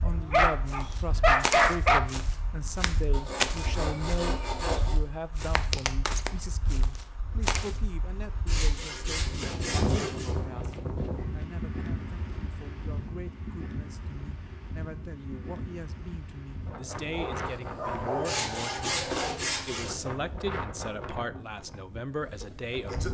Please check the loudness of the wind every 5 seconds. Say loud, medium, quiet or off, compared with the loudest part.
medium, loud, loud, loud, loud.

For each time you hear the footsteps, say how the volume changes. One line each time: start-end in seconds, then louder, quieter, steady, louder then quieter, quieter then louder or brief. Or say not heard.
0.7-7.8 quieter then louder.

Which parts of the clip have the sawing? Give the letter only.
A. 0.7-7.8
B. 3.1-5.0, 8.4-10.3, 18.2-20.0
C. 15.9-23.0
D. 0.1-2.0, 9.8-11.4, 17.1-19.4
B.